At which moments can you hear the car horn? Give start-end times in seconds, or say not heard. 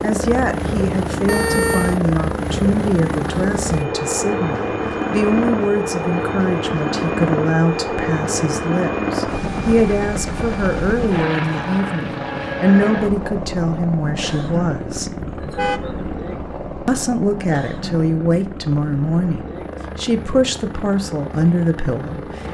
1.2-2.0, 15.2-16.1.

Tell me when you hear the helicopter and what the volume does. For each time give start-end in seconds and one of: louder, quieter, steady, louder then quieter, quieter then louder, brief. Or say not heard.
0.0-22.4 quieter.